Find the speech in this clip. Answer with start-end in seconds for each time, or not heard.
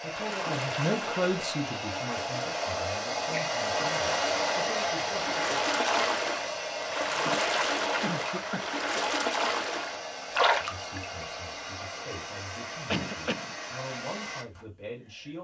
0.0-5.6, 10.6-15.3.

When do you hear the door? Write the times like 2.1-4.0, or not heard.
not heard.